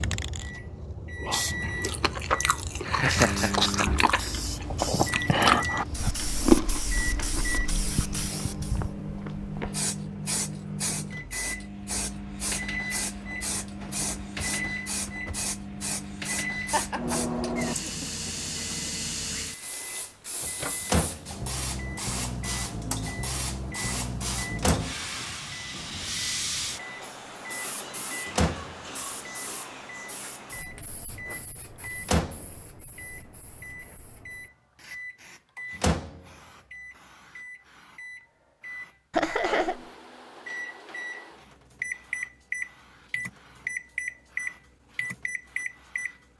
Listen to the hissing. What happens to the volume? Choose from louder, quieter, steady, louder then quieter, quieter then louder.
quieter.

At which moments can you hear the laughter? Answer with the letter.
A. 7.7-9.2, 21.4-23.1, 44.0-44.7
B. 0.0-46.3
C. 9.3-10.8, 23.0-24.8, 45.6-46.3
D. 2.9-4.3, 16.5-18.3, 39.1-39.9
D.